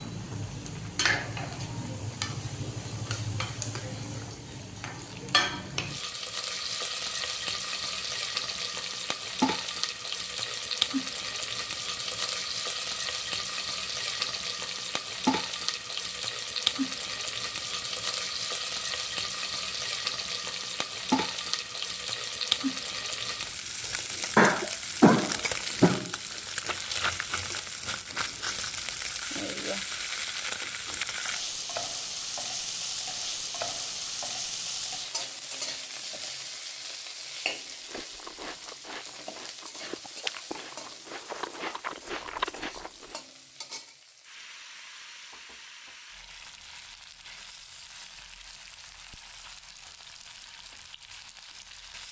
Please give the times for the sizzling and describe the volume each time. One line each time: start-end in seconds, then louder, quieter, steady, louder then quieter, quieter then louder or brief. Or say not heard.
0.0-52.0 quieter.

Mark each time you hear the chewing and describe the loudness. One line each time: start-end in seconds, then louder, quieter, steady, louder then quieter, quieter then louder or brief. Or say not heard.
37.7-43.2 louder.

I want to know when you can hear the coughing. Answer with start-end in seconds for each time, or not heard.
24.4-26.1.